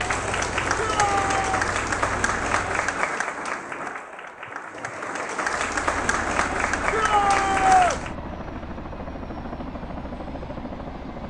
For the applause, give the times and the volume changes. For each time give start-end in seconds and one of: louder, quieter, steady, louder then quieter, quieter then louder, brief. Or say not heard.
0.0-8.2 quieter then louder.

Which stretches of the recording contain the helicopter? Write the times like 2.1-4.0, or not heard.
0.0-3.1, 5.6-11.2.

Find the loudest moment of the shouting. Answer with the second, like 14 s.
8 s.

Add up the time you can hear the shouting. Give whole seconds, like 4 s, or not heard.
2 s.